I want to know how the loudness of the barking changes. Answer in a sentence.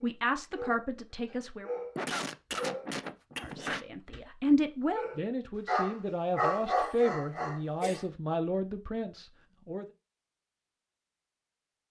The loudness of the barking goes up, then down.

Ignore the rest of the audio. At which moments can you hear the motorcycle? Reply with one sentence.
The motorcycle can't be heard in this clip.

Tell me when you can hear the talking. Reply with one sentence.
You can hear the talking from 0.0 to 1.7 s and from 3.4 to 9.8 s.